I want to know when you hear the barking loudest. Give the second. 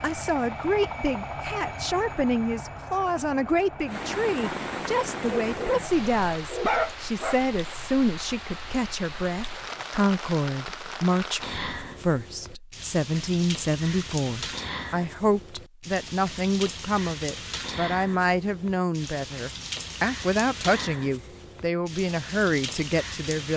7 s.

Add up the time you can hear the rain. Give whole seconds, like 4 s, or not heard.
20 s.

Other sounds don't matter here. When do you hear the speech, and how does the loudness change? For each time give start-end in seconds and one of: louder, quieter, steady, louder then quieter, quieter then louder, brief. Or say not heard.
0.0-23.5 steady.